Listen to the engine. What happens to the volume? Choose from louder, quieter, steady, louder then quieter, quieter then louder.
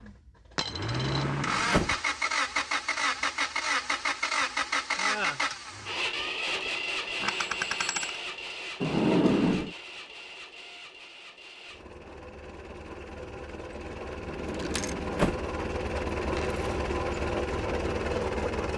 quieter then louder.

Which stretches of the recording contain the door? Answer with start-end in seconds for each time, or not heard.
0.8-1.9, 8.8-9.8, 14.2-15.4.